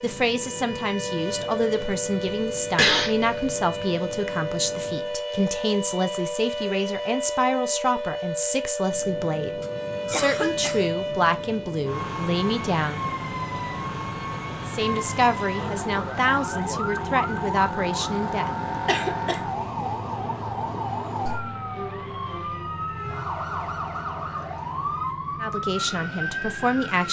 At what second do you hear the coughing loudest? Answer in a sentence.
The loudest moment of the coughing is at 3 seconds.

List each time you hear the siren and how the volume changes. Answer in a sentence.
You can hear the siren from 0.0 to 27.0 s, at a steady volume.